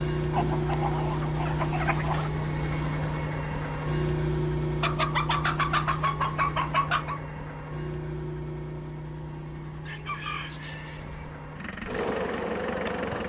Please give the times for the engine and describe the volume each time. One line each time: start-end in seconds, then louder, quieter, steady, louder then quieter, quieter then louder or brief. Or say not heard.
0.0-13.2 quieter.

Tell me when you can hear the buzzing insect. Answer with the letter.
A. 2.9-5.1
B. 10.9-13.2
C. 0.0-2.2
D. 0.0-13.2
B.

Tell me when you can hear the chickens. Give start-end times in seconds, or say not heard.
0.3-2.3, 4.8-7.2, 9.8-11.0.